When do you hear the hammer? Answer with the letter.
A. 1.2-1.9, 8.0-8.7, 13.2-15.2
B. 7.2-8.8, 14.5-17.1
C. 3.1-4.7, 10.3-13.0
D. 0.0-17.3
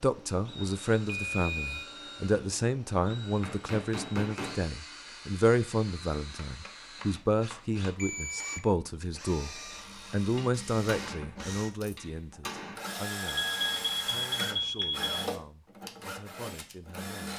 C.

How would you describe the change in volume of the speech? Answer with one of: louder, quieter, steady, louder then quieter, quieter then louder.
quieter.